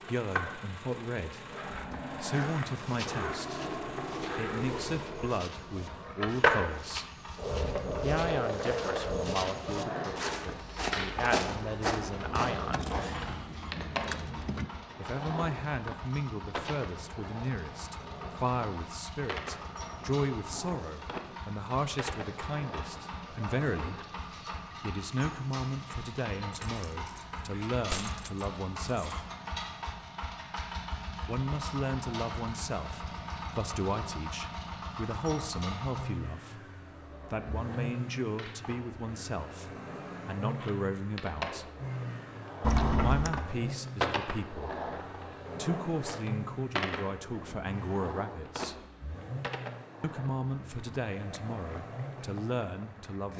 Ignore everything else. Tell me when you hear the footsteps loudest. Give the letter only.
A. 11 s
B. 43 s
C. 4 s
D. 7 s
A.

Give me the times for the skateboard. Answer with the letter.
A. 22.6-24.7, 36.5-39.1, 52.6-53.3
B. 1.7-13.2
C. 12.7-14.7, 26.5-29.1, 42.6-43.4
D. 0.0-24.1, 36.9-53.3
D.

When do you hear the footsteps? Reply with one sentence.
You can hear the footsteps from 1.7 to 13.2 s.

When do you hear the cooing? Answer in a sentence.
The cooing can't be heard in this clip.